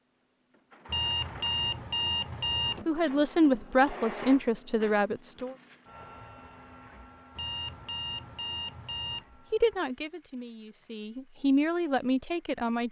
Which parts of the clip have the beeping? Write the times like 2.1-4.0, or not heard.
0.8-2.9, 7.3-9.2.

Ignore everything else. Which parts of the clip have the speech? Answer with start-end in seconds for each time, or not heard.
2.9-5.5, 9.5-12.8.